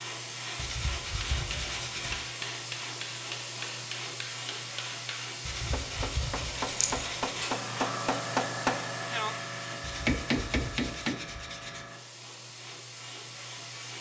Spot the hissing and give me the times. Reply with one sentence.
The hissing can be heard from 0.0 to 13.9 s.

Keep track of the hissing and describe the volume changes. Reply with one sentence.
The loudness of the hissing goes down.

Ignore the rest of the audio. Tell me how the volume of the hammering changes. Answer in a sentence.
The volume of the hammering goes up.